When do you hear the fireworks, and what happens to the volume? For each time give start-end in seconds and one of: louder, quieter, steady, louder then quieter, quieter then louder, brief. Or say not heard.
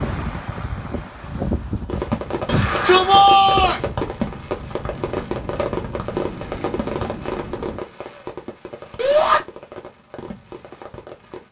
1.9-11.4 quieter.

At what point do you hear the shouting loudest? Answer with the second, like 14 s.
3 s.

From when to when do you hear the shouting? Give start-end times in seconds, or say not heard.
2.5-3.9, 8.9-9.4.